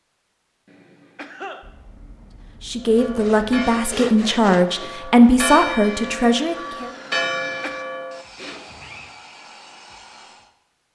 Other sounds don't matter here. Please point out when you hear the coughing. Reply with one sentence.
You can hear the coughing from 0.7 to 1.6 s and from 7.1 to 7.8 s.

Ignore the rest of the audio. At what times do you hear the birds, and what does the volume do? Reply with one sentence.
The birds can't be heard in this clip.